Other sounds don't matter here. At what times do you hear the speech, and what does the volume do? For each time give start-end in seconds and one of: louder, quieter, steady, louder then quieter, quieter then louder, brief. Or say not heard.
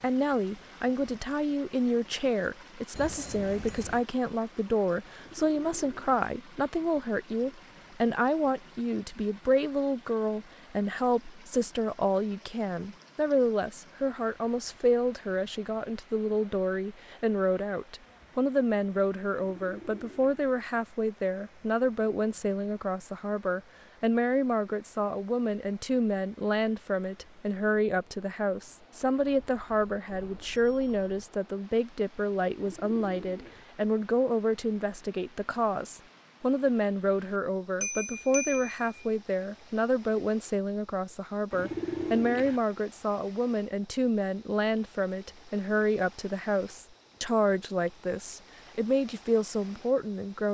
0.0-50.4 steady.